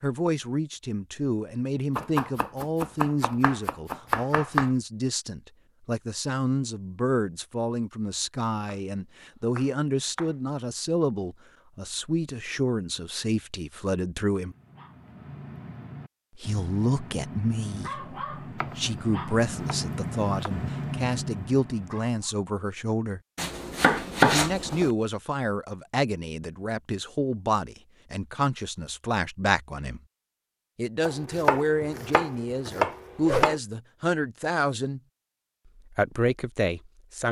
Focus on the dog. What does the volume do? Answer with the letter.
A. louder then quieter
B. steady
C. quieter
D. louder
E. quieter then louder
D.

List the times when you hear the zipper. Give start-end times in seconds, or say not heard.
not heard.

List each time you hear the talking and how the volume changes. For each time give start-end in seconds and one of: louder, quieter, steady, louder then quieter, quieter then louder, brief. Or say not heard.
0.0-14.6 steady
16.4-23.2 steady
24.2-30.0 steady
30.8-35.0 quieter then louder
35.9-37.2 brief.